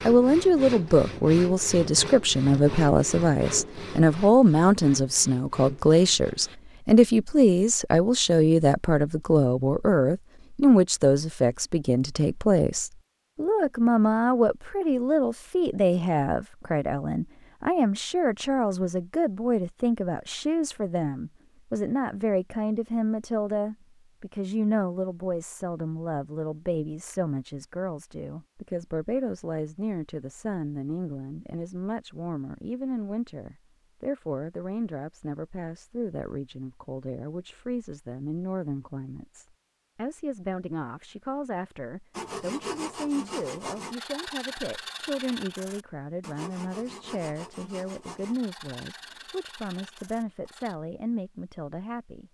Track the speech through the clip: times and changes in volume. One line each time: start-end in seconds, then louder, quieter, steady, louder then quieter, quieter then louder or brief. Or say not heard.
0.1-52.2 quieter.